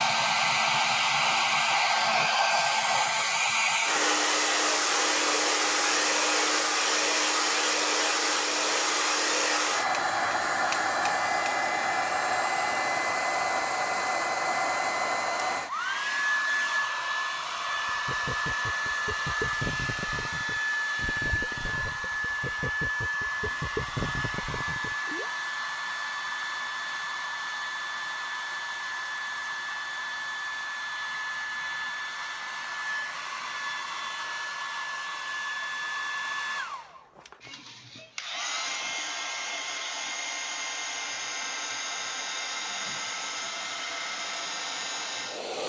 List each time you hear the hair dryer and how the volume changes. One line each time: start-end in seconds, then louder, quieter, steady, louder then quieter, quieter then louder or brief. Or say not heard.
0.0-45.6 quieter.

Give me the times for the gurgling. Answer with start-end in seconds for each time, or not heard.
17.9-25.3.